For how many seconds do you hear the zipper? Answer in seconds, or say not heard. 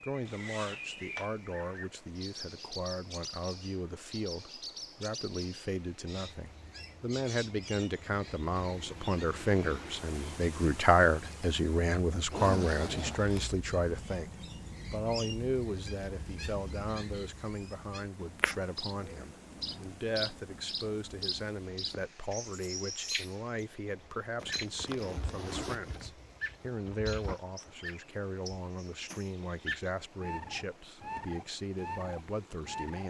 4 s.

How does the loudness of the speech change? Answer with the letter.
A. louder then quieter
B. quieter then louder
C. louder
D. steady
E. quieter
A.